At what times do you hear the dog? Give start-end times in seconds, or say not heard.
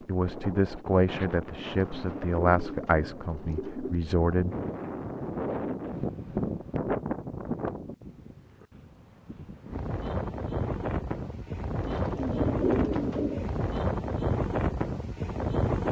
not heard.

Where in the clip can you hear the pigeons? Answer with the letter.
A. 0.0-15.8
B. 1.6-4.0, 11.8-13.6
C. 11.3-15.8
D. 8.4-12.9
B.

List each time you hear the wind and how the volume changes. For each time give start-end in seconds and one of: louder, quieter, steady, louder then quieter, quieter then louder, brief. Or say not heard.
0.0-15.8 louder.